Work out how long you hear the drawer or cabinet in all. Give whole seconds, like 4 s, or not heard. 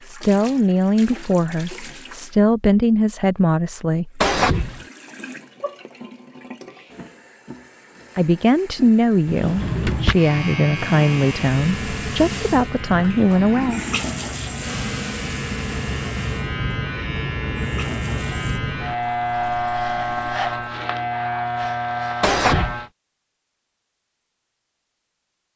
2 s.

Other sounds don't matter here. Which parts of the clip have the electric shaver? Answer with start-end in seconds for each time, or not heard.
9.6-22.9.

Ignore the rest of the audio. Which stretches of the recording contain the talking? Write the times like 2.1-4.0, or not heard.
0.1-4.5, 8.2-13.8.